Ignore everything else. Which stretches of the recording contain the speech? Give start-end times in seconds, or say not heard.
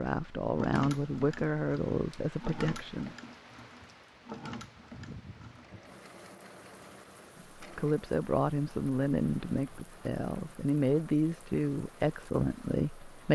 0.0-3.1, 7.6-13.2.